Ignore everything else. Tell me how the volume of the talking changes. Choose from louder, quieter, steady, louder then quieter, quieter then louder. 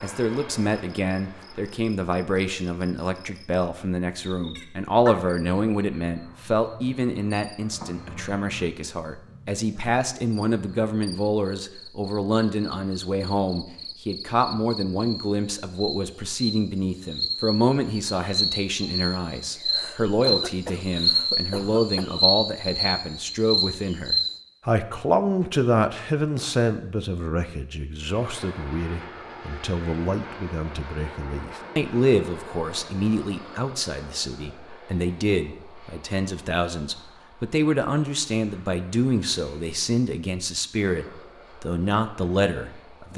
steady.